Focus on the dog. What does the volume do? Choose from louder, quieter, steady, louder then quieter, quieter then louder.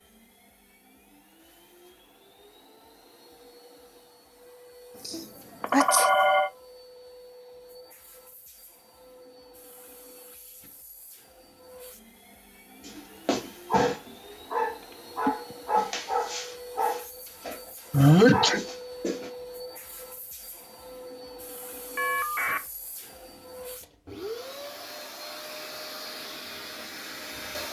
steady.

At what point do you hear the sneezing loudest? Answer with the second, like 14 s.
18 s.